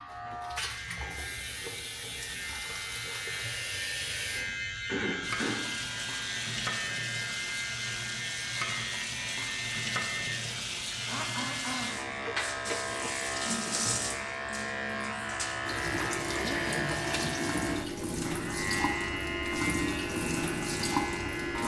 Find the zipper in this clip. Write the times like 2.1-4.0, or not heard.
not heard.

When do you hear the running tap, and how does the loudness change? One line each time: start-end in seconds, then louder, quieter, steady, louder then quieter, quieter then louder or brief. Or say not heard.
0.0-21.6 louder.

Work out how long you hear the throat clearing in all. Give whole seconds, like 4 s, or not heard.
3 s.